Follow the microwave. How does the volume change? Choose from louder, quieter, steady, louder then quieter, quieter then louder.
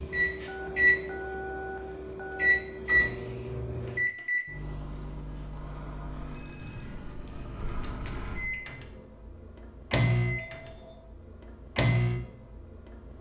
quieter then louder.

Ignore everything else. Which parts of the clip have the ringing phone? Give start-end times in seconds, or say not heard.
0.5-2.5, 6.3-7.0, 10.2-11.0.